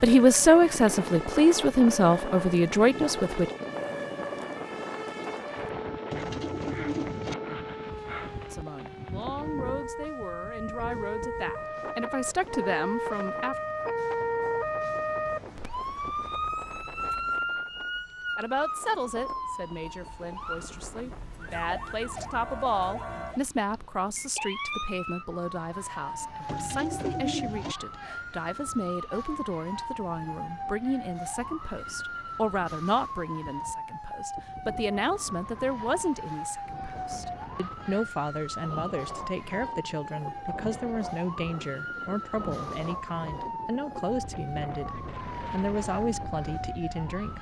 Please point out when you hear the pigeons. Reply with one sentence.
The pigeons can be heard from 6.1 to 7.3 s and from 26.4 to 27.8 s.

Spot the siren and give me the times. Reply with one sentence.
You can hear the siren from 0.0 to 47.3 s.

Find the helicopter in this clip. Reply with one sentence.
You can't hear the helicopter here.